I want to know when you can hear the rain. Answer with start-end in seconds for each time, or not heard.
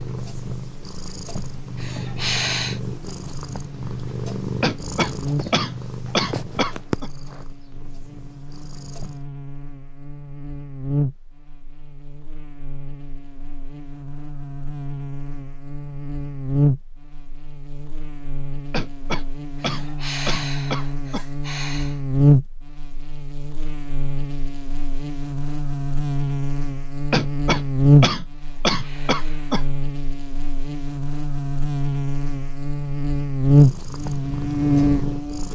not heard.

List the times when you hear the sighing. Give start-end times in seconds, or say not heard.
1.8-2.8, 19.6-22.0, 28.4-29.5.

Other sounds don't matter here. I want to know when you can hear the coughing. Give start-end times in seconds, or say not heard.
4.6-7.1, 18.7-21.2, 27.1-29.6.